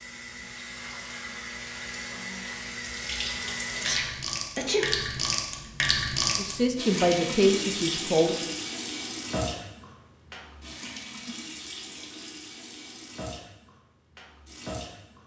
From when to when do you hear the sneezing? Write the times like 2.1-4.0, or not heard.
3.8-4.9.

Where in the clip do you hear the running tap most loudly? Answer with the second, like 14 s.
6 s.